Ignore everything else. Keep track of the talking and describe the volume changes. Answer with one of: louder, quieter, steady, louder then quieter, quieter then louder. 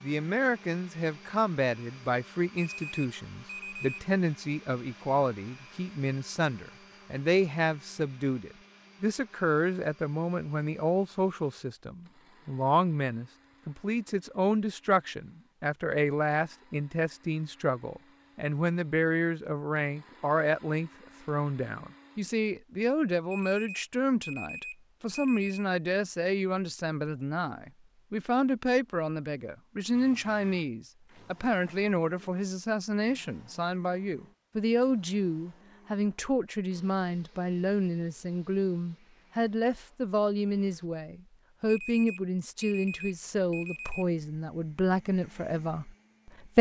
steady.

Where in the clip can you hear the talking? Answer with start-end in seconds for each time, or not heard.
0.0-46.5.